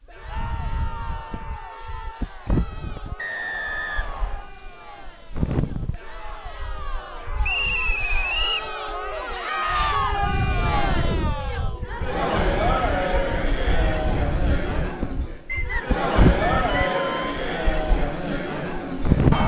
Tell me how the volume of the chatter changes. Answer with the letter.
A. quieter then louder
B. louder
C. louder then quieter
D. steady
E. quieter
B.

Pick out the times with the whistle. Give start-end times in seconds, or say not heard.
3.1-4.5, 7.4-8.7, 15.4-17.2.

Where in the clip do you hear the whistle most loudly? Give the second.
8 s.